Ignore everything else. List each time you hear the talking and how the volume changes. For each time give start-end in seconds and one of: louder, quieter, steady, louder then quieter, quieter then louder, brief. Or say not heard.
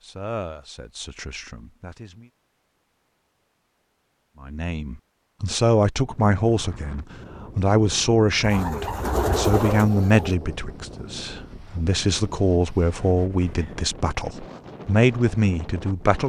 0.0-2.3 brief
4.4-16.2 steady.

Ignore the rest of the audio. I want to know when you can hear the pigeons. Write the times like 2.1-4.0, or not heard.
8.4-10.3.